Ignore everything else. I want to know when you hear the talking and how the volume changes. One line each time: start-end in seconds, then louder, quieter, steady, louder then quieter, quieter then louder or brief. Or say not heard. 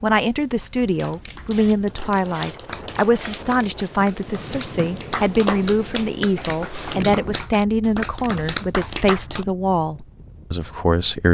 0.0-11.3 steady.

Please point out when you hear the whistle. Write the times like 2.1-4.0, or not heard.
not heard.